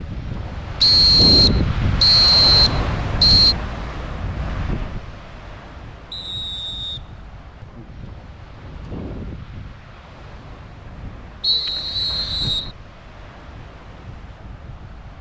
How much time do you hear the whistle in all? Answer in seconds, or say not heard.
5 s.